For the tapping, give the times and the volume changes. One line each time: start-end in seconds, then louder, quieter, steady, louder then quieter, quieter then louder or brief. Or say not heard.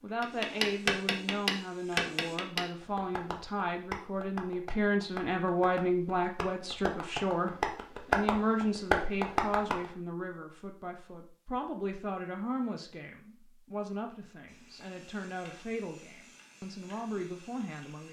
0.2-9.8 quieter then louder.